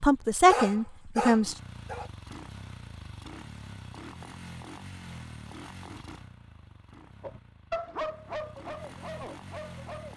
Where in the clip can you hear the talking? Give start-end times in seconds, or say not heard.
0.0-1.6.